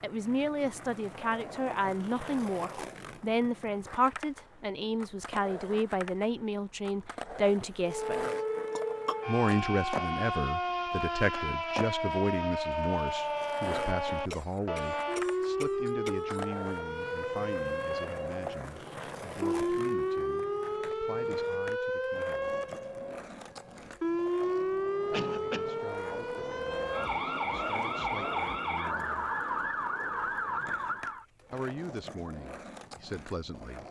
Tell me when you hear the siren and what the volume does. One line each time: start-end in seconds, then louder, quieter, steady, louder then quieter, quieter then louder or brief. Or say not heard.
7.8-31.2 steady.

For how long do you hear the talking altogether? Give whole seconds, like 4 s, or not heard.
28 s.